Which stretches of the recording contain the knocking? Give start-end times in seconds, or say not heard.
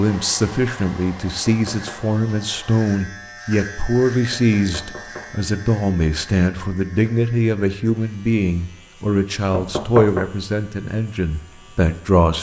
1.4-2.1, 4.3-5.3, 9.5-10.2.